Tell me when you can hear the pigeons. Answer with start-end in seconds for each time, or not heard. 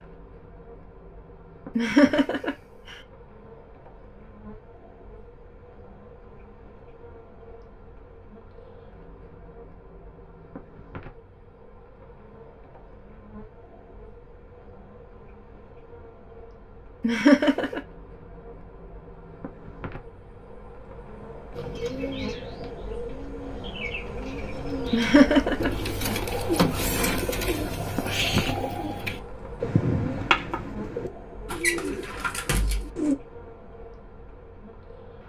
21.6-33.1.